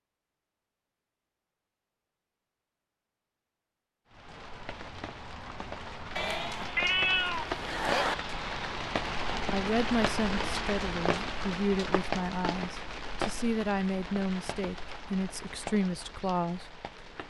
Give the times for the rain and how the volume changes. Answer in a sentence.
The rain can be heard from 4.0 to 17.2 s, getting louder then quieter.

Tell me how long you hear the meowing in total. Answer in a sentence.
The meowing can be heard for 2 seconds in total.